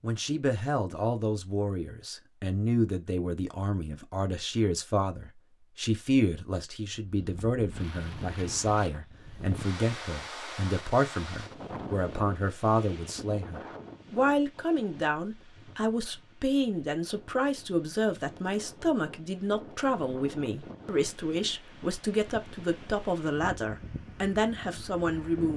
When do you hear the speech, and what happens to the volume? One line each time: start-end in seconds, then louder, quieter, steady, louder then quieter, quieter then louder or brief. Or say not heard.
0.0-25.5 steady.